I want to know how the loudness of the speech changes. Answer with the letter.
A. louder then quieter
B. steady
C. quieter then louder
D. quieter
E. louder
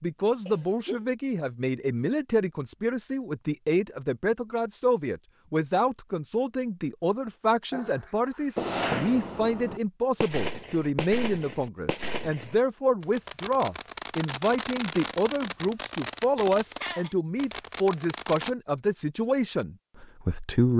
B.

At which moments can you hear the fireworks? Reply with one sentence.
The fireworks can be heard from 8.6 to 18.6 s.